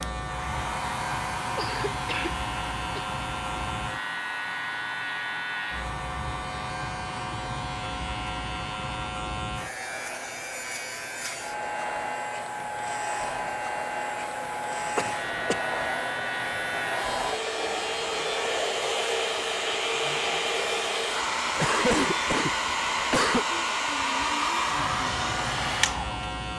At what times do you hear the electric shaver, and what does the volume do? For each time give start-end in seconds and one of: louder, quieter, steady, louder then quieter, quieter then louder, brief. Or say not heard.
0.0-26.5 steady.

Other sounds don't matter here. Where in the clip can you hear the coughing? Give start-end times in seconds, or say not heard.
1.6-2.4, 14.9-15.6, 21.6-23.4.